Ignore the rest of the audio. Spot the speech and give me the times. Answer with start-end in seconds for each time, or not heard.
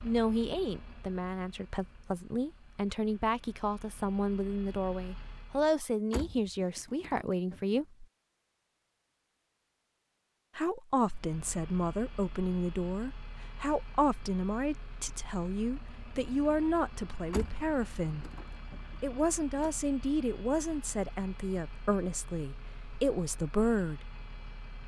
0.0-8.1, 10.6-18.3, 19.0-24.1.